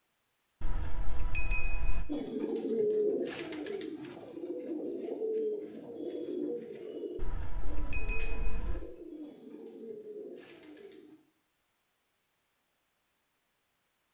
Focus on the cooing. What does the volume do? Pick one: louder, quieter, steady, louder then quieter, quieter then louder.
quieter.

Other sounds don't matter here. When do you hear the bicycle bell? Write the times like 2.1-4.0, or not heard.
0.6-2.0, 7.2-8.8.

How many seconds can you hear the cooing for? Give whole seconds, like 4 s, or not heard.
9 s.